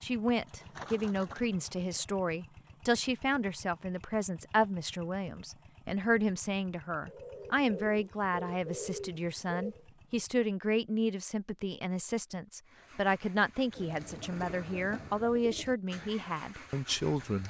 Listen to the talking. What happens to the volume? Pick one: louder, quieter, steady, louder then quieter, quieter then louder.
steady.